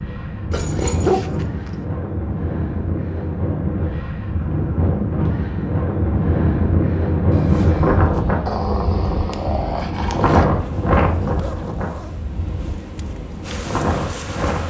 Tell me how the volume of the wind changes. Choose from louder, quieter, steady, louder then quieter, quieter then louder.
louder then quieter.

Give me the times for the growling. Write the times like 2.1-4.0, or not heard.
0.5-1.5, 8.4-10.4.